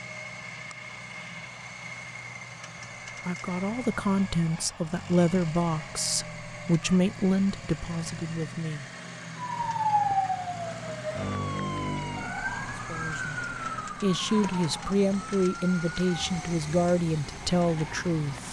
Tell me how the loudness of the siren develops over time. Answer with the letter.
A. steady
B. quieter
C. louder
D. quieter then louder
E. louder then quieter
B.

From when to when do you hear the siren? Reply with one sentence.
You can hear the siren from 9.3 to 18.4 s.